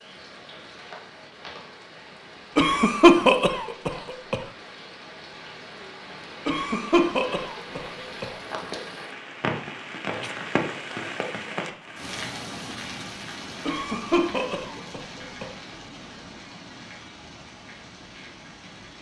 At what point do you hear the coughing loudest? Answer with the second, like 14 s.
3 s.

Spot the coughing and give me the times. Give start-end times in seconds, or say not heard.
2.5-4.4, 6.5-8.2, 13.7-15.4.